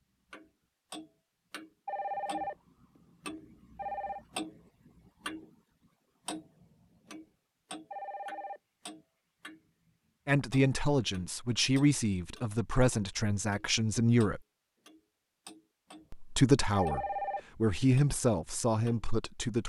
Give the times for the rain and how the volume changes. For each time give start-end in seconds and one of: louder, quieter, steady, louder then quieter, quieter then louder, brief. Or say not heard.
not heard.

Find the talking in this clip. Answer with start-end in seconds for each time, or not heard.
10.2-14.4, 16.1-19.6.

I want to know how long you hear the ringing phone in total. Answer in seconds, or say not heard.
4 s.